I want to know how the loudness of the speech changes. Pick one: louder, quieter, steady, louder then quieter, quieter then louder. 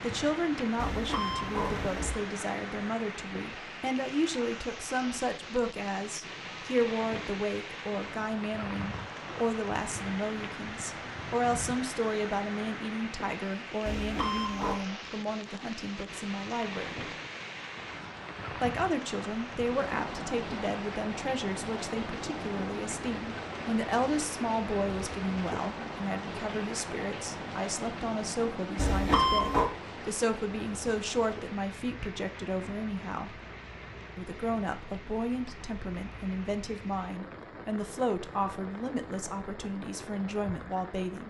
steady.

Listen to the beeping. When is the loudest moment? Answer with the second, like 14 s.
29 s.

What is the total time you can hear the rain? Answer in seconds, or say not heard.
41 s.